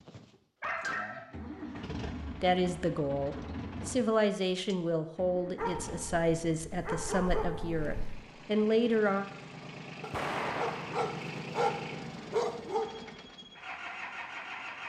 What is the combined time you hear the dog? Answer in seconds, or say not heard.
7 s.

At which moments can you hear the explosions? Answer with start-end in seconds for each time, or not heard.
10.1-11.1.